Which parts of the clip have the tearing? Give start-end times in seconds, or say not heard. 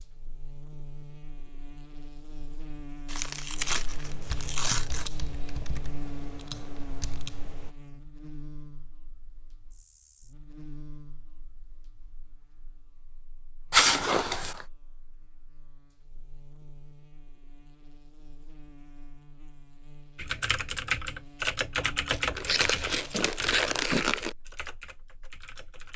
3.0-5.1, 13.7-14.7, 22.1-24.4.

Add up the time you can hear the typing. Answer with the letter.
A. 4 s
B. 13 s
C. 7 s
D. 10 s
D.